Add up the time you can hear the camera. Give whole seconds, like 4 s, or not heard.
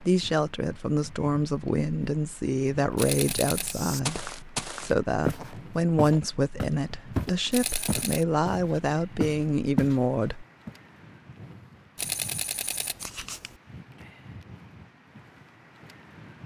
3 s.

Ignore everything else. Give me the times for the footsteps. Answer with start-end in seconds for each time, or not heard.
3.6-10.0.